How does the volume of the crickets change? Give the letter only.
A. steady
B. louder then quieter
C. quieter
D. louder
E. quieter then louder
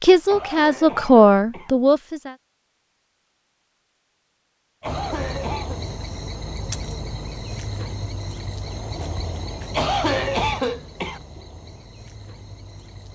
C.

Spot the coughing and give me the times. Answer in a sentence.
You can hear the coughing from 0.2 to 1.8 s, from 4.8 to 5.8 s and from 9.7 to 11.2 s.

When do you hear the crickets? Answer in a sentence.
The crickets can be heard from 4.8 to 13.0 s.